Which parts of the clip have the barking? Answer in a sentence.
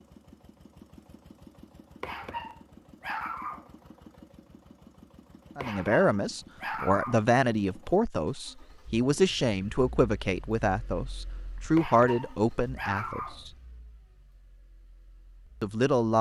The barking can be heard from 2.0 to 3.7 s, from 5.6 to 7.2 s and from 11.8 to 13.4 s.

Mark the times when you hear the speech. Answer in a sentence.
You can hear the speech from 5.5 to 13.5 s and from 15.6 to 16.1 s.